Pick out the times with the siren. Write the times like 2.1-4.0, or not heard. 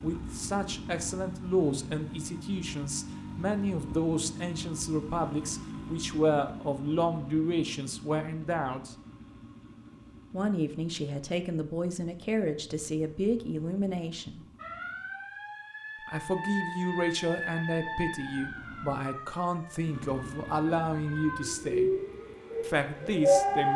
14.6-23.7.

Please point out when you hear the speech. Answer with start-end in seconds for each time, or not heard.
0.0-8.9, 10.3-14.4, 16.1-21.9, 22.6-23.7.